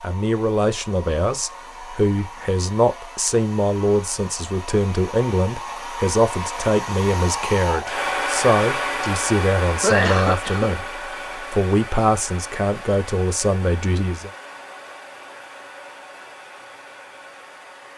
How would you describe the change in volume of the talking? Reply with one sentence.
The volume of the talking stays about the same.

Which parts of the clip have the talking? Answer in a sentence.
The talking can be heard from 0.0 to 14.3 s.